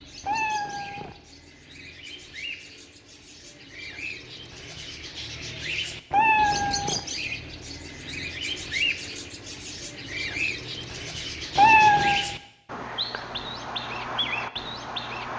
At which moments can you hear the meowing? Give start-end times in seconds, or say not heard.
0.2-1.1, 6.1-7.0, 11.6-12.2.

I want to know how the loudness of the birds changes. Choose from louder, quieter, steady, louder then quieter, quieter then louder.
louder.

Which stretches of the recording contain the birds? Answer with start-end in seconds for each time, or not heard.
0.0-15.3.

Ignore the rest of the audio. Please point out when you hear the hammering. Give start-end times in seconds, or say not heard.
not heard.